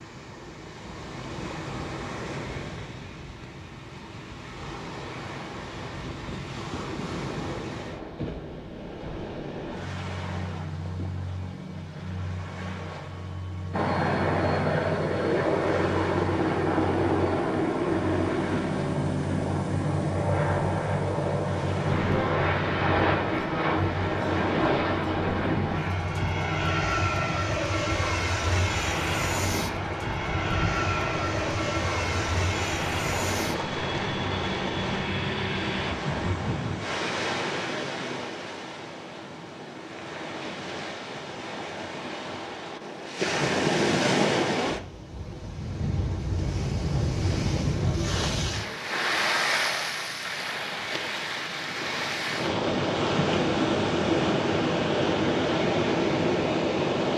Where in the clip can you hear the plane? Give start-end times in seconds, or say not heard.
13.7-36.0.